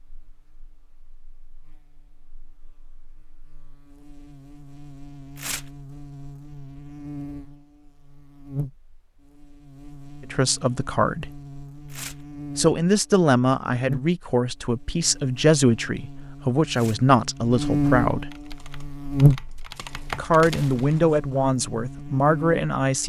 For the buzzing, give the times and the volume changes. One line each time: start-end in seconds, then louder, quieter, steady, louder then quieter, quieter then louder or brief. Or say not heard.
0.0-23.0 louder.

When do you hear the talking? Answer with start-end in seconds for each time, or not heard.
10.2-11.3, 12.6-18.3, 20.1-23.0.